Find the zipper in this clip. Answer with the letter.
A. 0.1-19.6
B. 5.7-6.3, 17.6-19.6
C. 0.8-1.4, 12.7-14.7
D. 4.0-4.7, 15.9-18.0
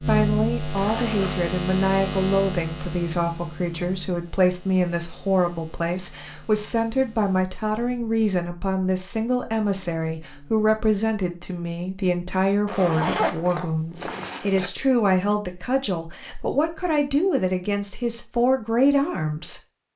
C.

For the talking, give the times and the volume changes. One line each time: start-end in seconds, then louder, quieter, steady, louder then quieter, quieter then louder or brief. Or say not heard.
0.1-19.6 steady.